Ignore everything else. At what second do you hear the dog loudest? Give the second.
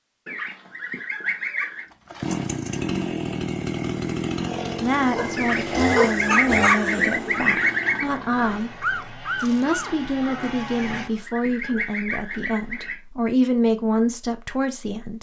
6 s.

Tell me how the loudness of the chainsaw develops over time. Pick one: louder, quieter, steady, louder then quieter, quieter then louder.
quieter.